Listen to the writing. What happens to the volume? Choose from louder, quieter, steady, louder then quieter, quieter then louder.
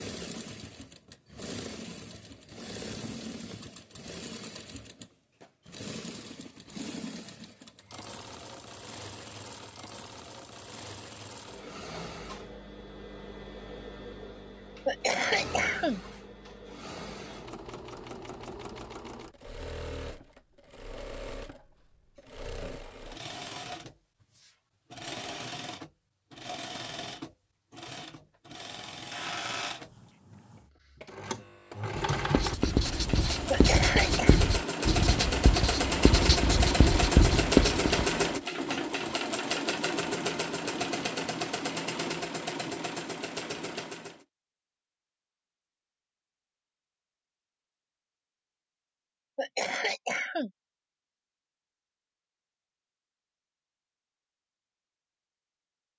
louder.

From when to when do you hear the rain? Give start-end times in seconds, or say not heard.
not heard.